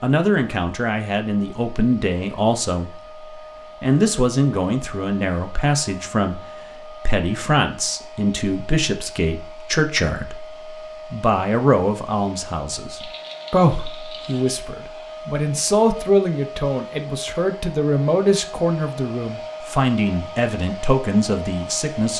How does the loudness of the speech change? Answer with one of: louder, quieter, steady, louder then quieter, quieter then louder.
steady.